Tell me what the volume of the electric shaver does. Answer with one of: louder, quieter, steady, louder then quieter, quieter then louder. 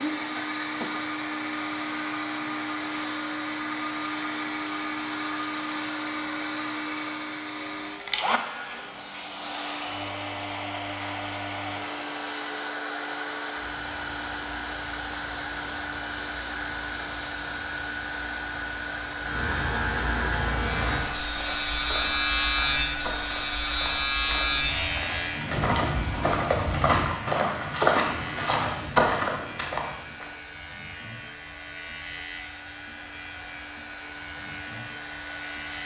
louder then quieter.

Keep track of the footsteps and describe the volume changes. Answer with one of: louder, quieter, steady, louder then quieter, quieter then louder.
louder.